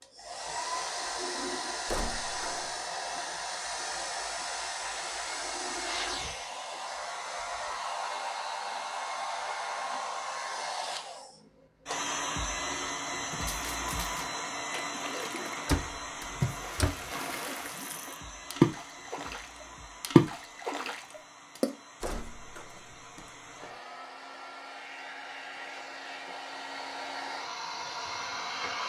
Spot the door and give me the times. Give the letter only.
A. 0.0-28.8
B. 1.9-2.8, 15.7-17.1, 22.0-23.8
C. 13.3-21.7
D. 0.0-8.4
B.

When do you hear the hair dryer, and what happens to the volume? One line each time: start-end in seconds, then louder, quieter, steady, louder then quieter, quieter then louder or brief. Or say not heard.
0.0-28.8 quieter then louder.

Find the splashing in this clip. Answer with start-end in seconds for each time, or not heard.
13.3-21.7.